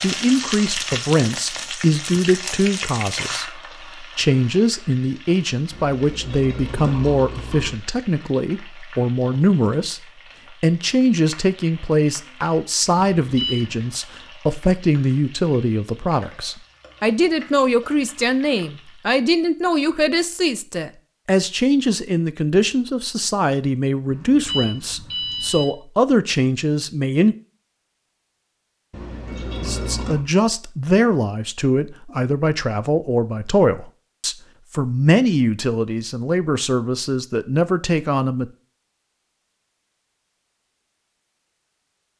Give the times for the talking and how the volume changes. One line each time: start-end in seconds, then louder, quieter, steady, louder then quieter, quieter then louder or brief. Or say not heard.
0.0-27.4 steady
29.6-38.5 steady.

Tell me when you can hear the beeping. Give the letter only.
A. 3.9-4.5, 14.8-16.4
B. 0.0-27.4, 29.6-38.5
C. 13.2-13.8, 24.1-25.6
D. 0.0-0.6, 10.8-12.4
C.